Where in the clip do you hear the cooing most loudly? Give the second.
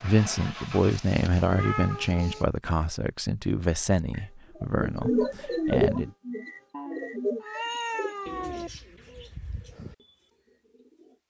6 s.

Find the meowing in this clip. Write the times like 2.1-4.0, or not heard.
1.4-2.5, 6.7-8.7.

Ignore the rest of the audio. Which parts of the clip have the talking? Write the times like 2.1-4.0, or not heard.
0.0-6.1.